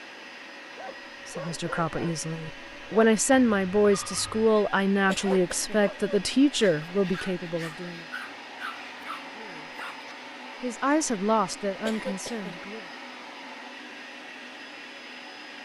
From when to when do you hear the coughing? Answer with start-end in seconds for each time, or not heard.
5.0-5.8, 11.8-12.6.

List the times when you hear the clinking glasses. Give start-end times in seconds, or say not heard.
not heard.